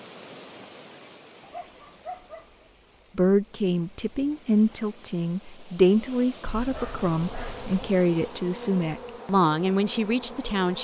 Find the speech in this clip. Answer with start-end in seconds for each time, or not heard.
3.1-10.7.